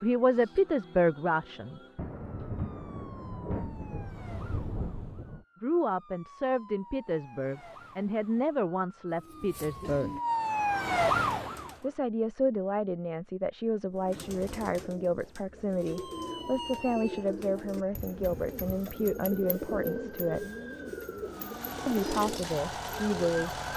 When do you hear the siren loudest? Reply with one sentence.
The volume of the siren peaks at 11 seconds.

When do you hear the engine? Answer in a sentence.
The engine can be heard from 21.2 to 23.7 s.